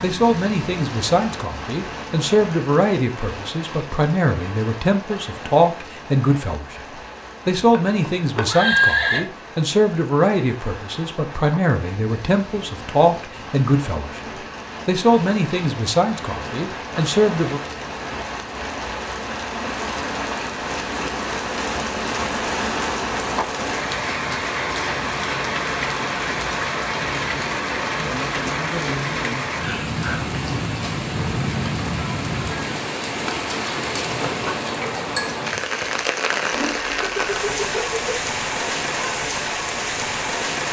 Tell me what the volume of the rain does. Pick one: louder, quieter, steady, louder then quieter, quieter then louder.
louder.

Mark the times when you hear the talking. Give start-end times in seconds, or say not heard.
0.0-17.6.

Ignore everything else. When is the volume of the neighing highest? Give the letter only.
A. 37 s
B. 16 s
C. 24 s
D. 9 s
D.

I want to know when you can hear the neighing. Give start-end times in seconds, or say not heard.
7.5-9.2, 36.5-38.2.